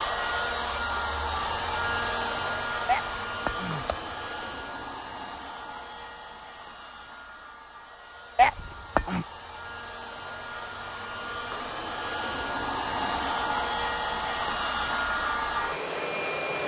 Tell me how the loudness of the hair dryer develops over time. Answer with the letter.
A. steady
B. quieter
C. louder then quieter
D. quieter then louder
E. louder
D.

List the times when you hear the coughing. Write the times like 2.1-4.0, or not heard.
2.9-4.5, 8.3-9.2.